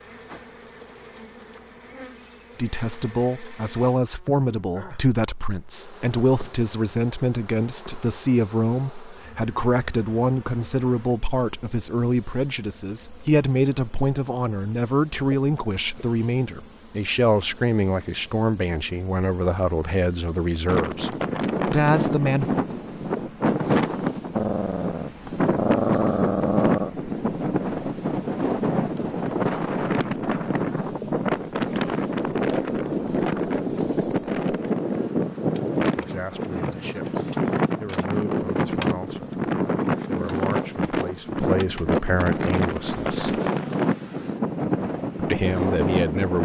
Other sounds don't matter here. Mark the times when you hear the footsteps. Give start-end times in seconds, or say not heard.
not heard.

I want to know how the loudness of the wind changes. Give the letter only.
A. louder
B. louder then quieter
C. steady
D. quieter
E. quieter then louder
C.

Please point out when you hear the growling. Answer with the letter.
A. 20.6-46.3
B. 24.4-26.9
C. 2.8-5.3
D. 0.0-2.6
B.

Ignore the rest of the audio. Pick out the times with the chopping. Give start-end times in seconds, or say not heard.
not heard.